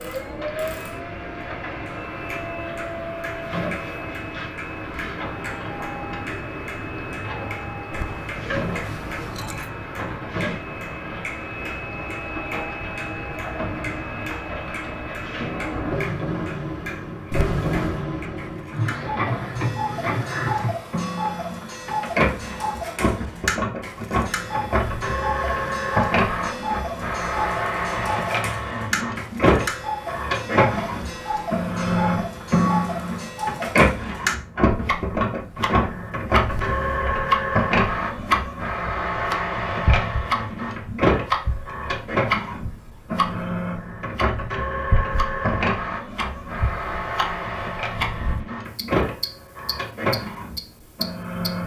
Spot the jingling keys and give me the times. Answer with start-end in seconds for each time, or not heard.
7.9-9.7, 17.3-18.1, 36.5-37.1.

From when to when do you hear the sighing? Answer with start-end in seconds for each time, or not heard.
not heard.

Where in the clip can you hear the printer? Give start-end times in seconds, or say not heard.
0.0-51.6.